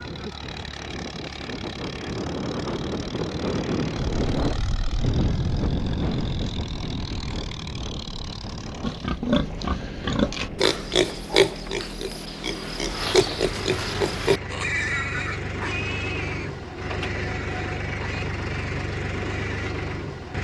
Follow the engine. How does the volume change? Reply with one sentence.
The volume of the engine goes up.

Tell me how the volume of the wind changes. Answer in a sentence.
The volume of the wind goes up, then down.